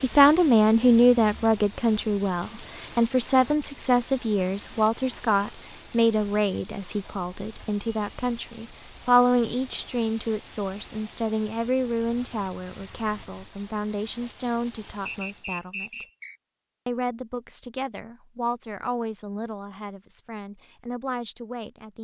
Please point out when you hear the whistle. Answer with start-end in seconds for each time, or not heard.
15.1-16.4.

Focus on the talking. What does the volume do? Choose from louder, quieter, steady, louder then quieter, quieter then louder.
quieter.